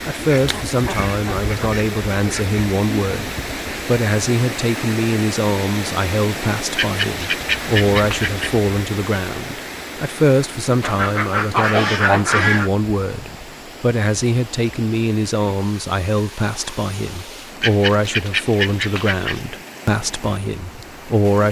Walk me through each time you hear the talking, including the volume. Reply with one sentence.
The talking can be heard from 0.1 to 21.4 s, at a steady volume.